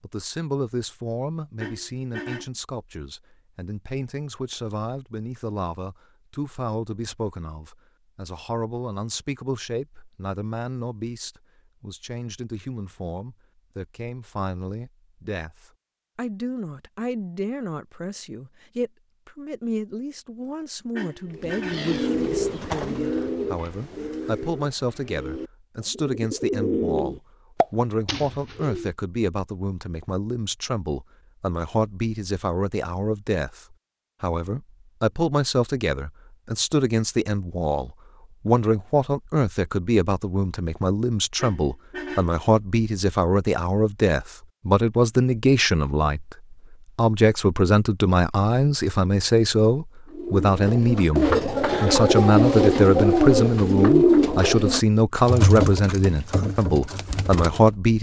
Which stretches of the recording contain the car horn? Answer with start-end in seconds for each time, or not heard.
1.6-2.5, 20.9-21.9, 41.4-42.4.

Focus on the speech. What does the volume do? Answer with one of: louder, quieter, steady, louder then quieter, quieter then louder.
louder.